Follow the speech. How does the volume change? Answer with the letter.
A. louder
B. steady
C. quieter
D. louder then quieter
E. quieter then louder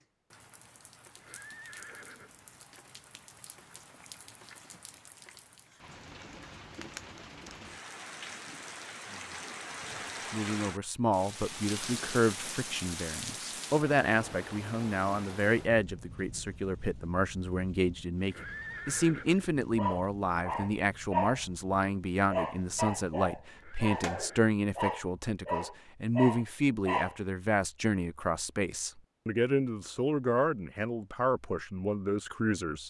B.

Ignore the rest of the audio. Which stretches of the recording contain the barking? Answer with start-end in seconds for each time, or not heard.
19.8-27.1.